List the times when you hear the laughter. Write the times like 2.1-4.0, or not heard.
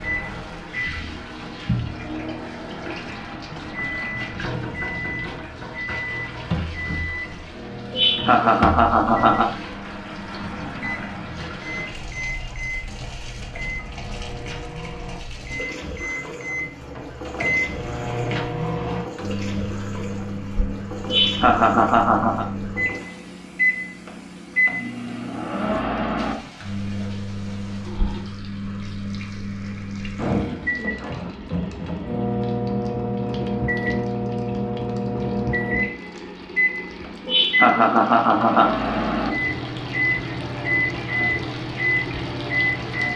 7.9-9.4, 21.1-22.4, 37.2-38.7.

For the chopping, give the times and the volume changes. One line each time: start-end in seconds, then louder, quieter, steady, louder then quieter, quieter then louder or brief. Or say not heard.
not heard.